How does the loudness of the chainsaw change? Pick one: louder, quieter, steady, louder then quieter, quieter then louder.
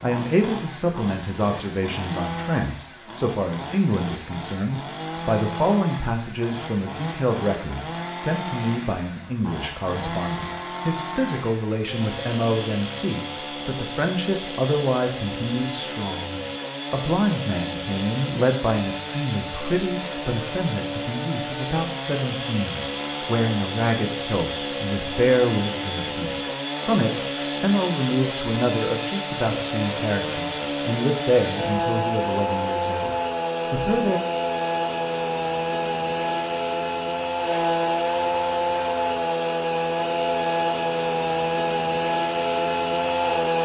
louder.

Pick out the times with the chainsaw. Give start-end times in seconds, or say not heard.
0.0-43.6.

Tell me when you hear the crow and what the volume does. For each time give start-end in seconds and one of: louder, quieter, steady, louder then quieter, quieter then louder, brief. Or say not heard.
not heard.